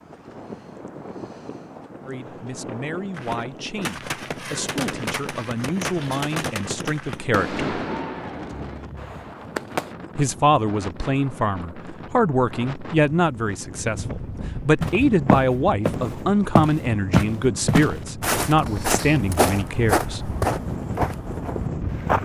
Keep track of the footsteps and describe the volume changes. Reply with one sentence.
The volume of the footsteps goes down.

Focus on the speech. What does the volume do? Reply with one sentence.
The volume of the speech goes up.